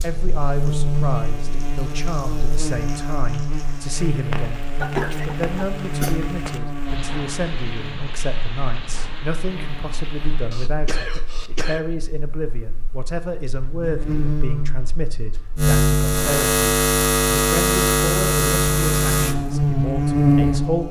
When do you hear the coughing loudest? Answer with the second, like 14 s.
5 s.